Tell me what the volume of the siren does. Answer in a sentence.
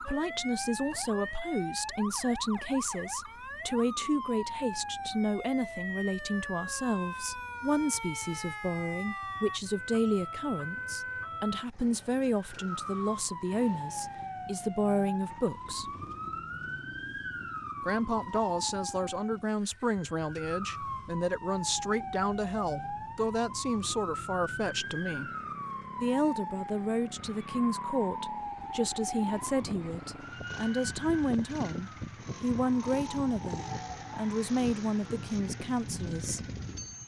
The volume of the siren stays about the same.